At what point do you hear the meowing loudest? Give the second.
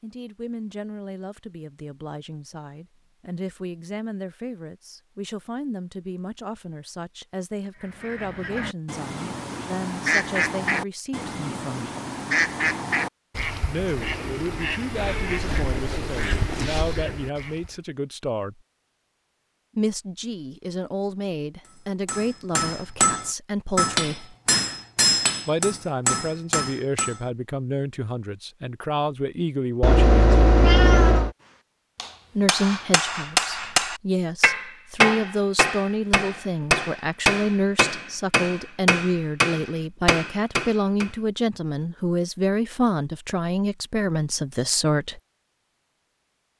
31 s.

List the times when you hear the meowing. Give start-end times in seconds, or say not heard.
14.9-16.9, 29.8-31.3.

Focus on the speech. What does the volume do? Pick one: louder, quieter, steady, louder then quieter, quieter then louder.
louder.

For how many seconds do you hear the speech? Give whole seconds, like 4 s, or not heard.
39 s.